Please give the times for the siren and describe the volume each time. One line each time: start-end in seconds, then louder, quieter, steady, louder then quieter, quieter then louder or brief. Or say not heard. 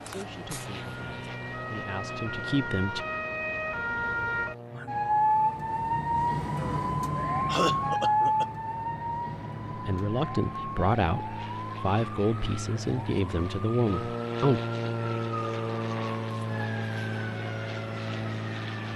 0.0-18.9 louder then quieter.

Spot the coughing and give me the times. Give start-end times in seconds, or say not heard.
6.5-8.4.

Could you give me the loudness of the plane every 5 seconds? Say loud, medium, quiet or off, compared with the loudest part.
medium, quiet, loud, loud.